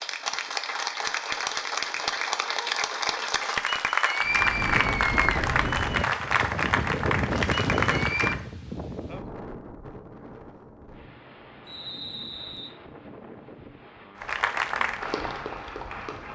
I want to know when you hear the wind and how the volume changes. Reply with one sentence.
The wind can be heard from 4.2 to 16.2 s, getting quieter.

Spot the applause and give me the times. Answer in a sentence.
You can hear the applause from 0.0 to 8.4 s and from 14.2 to 16.2 s.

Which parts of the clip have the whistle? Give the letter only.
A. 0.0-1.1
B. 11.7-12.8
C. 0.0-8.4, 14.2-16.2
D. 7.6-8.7
B.